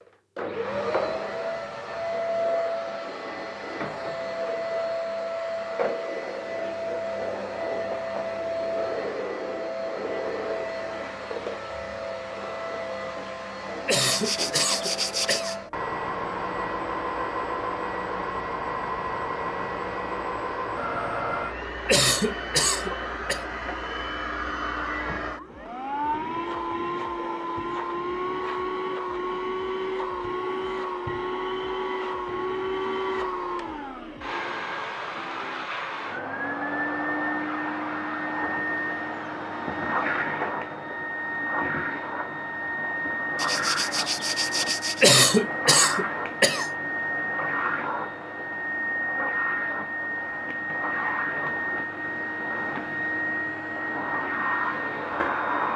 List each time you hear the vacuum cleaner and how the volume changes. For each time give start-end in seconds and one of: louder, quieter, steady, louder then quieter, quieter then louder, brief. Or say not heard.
0.0-55.7 steady.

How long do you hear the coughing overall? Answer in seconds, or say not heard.
5 s.